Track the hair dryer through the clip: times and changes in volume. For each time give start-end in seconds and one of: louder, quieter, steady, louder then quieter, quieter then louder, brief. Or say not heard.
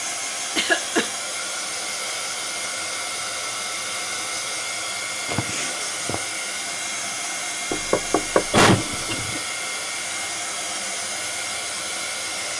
0.0-12.5 steady.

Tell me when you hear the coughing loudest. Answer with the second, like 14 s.
9 s.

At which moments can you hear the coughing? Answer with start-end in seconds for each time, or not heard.
0.6-1.1, 5.2-6.2, 8.5-9.4.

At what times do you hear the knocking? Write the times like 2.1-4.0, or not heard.
7.7-9.3.